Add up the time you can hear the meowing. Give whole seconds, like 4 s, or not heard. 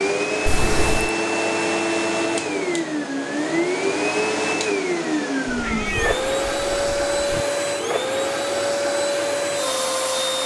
3 s.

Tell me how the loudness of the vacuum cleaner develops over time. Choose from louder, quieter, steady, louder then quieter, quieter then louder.
steady.